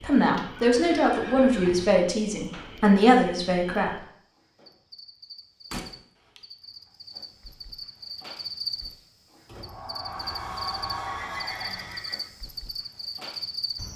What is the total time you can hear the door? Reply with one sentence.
The door can be heard for 5 seconds in total.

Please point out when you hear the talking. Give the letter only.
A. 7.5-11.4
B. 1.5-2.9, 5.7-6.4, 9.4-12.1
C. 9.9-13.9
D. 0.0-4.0
D.